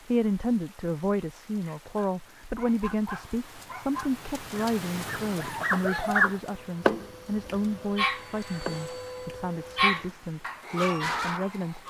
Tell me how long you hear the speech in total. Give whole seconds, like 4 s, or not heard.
12 s.